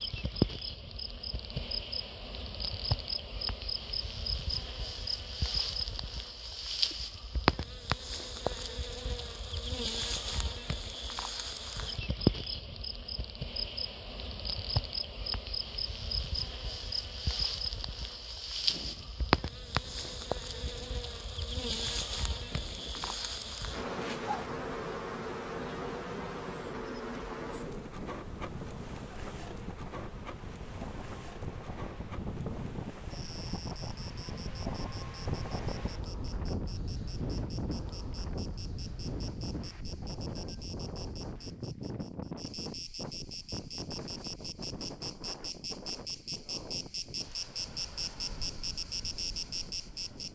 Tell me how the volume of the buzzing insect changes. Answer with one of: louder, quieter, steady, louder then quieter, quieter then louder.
quieter then louder.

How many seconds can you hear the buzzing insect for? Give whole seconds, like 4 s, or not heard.
50 s.